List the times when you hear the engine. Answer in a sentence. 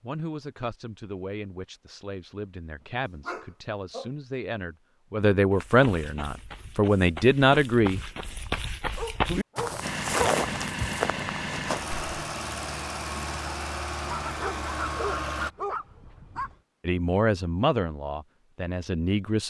You can hear the engine from 9.8 to 15.5 s.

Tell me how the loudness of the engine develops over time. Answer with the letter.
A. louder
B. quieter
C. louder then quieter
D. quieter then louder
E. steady
E.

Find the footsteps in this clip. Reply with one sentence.
The footsteps can be heard from 5.5 to 12.2 s.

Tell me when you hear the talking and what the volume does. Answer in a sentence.
You can hear the talking from 0.0 to 8.0 s, getting louder; and briefly from 16.9 to 19.4 s.